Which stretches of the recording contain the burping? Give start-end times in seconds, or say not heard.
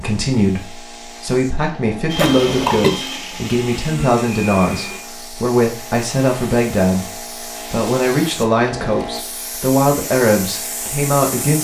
2.1-2.9.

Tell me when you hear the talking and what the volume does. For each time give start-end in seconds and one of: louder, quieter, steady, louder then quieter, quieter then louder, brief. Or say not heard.
0.0-11.5 steady.